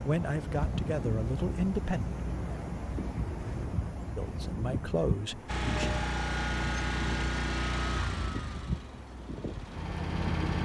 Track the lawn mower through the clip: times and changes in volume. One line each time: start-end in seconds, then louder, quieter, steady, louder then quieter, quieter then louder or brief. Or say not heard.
5.5-10.6 quieter then louder.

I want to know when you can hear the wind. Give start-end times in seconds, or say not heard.
0.0-10.6.